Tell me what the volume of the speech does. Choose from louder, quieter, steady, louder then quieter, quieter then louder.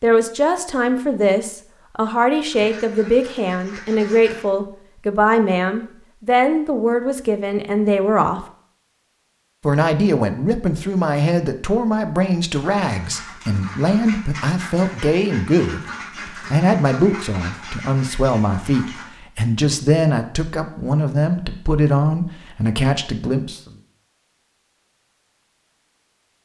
steady.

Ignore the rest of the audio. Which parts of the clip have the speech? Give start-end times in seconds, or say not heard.
0.0-8.4, 9.7-23.6.